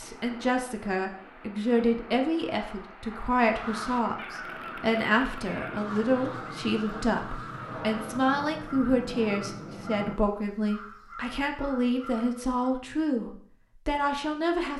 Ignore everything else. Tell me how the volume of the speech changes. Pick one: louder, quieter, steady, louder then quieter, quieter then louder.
steady.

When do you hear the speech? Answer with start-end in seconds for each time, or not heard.
0.0-14.7.